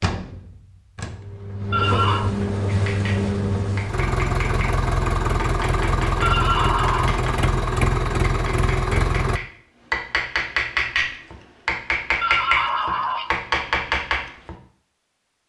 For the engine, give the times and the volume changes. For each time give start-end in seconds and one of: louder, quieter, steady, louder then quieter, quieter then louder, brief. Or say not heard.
0.0-9.4 louder.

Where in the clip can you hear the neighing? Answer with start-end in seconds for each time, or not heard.
1.7-2.3, 6.2-7.1, 12.2-13.4.